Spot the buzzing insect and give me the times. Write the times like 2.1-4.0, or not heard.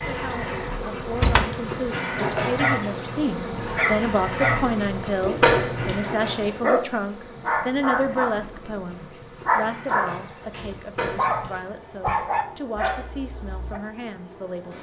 0.0-14.7.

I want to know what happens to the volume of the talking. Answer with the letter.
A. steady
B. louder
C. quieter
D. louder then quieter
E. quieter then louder
D.